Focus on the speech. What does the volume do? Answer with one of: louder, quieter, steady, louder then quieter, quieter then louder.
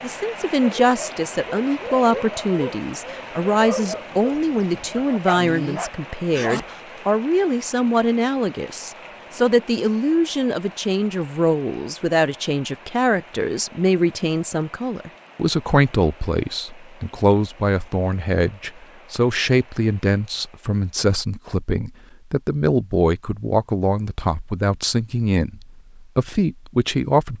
steady.